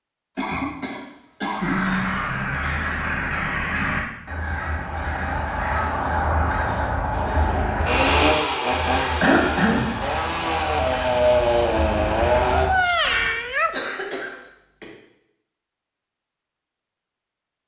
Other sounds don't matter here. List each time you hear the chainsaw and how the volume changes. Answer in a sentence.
You can hear the chainsaw from 7.8 to 12.7 s, getting quieter then louder.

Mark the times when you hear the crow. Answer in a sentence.
The crow can be heard from 1.6 to 13.3 s.